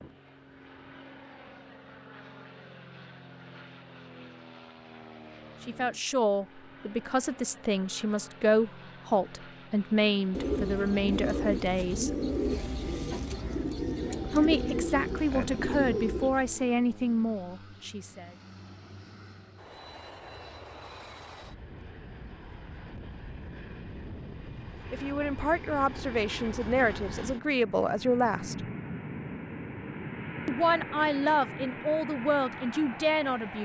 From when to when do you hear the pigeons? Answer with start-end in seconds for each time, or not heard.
10.3-16.6.